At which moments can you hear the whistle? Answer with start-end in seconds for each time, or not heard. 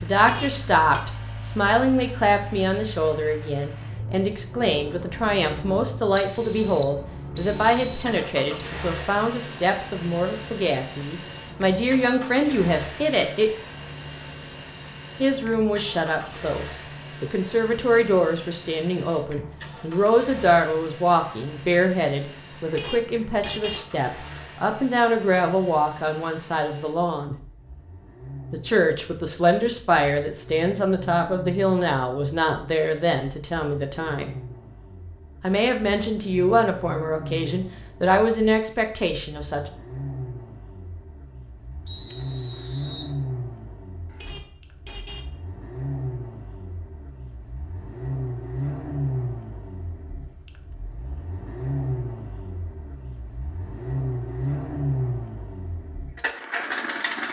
6.2-8.2, 41.9-43.1.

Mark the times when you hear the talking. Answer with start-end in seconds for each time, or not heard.
0.0-13.5, 15.2-27.4, 28.5-34.4, 35.4-39.7.